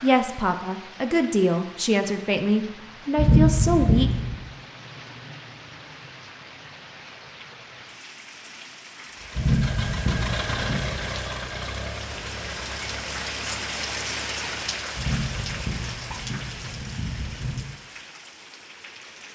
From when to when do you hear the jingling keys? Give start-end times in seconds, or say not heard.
3.1-4.3, 9.3-11.1, 14.9-17.6.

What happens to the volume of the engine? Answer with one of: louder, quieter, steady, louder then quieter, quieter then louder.
quieter.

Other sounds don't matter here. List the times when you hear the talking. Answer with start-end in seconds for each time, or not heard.
0.0-4.1.